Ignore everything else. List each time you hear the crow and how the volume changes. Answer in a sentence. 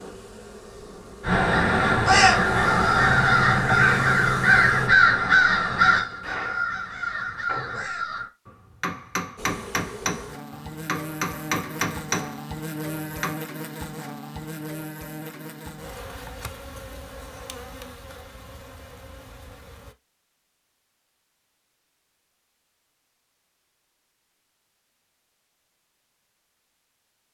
The crow can be heard from 1.2 to 8.3 s, getting quieter.